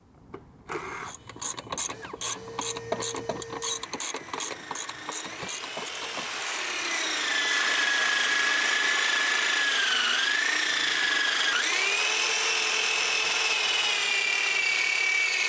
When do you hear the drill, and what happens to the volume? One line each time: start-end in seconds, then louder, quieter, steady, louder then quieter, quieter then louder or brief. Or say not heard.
0.0-15.4 louder.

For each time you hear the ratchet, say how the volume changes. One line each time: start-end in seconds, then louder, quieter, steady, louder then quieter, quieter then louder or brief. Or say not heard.
1.1-8.6 quieter.